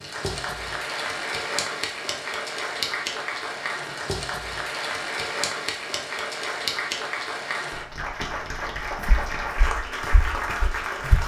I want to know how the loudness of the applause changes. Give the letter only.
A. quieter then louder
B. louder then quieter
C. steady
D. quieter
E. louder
C.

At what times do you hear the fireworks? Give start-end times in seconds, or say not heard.
not heard.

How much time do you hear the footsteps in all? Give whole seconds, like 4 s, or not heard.
2 s.